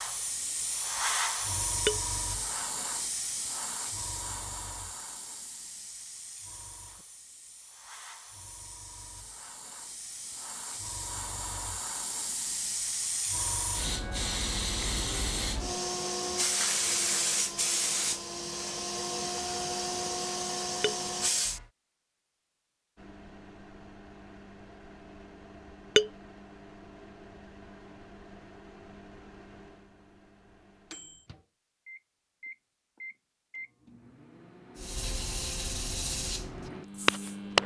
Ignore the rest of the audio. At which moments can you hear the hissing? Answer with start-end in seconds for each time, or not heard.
0.0-21.6, 34.8-37.4.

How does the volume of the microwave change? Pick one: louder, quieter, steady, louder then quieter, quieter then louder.
louder.